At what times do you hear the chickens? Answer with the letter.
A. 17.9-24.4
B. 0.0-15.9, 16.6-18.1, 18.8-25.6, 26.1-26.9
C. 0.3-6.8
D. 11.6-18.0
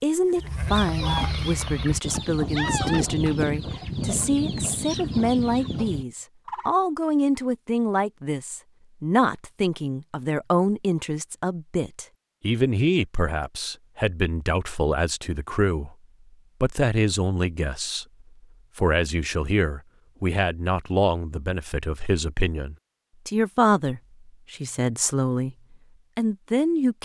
C.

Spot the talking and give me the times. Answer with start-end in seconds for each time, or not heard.
0.0-15.9, 16.6-18.1, 18.8-25.6, 26.1-26.9.